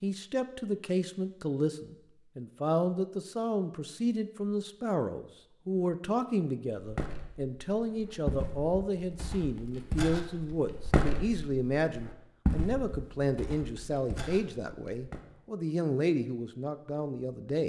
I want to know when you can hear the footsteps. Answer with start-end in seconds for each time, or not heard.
6.8-15.2.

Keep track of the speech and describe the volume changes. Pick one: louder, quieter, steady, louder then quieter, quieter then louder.
steady.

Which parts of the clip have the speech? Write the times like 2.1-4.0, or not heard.
0.0-17.6.